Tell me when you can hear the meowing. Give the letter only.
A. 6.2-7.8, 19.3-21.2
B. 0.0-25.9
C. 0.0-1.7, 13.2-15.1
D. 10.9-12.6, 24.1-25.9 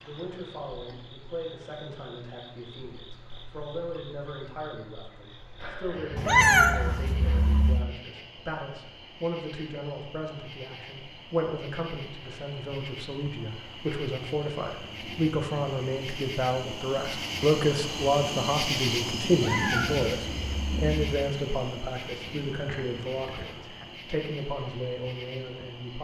A.